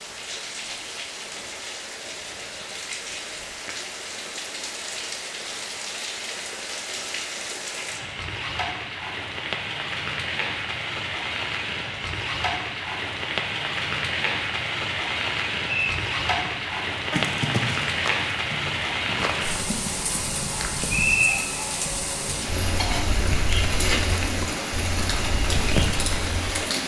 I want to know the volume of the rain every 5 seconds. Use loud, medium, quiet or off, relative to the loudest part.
medium, medium, loud, loud, loud, loud.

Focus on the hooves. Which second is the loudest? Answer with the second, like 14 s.
21 s.